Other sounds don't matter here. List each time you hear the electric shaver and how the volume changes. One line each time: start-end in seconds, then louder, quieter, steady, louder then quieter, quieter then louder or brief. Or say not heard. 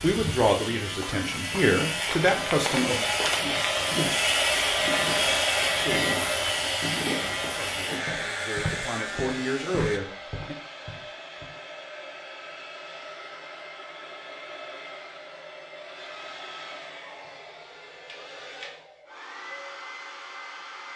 0.0-10.0 louder then quieter.